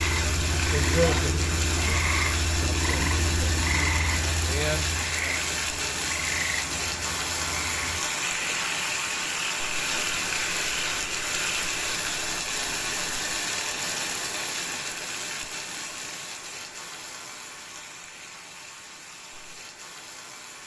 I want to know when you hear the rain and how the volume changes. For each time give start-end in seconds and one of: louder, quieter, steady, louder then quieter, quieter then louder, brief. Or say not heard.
0.0-20.6 quieter.